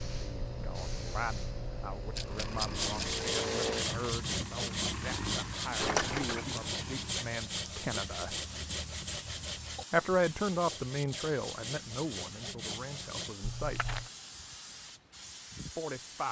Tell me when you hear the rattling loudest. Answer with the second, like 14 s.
6 s.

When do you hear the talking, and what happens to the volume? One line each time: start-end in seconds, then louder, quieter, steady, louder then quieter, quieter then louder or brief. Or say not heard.
0.1-8.3 steady
9.9-13.9 quieter
15.8-16.2 brief.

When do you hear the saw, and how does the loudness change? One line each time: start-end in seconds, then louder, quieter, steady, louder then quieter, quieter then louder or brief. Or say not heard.
2.7-13.3 quieter.